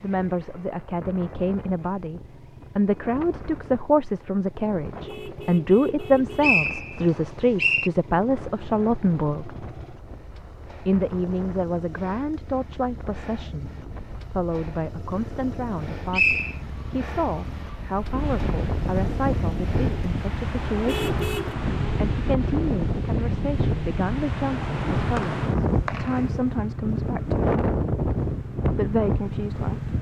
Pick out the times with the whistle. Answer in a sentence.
The whistle can be heard from 6.0 to 7.9 s, from 15.7 to 16.6 s and from 25.1 to 26.2 s.